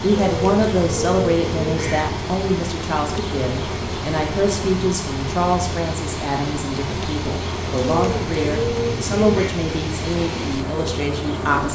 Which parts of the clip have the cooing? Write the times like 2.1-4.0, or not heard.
0.1-2.1, 7.7-9.6.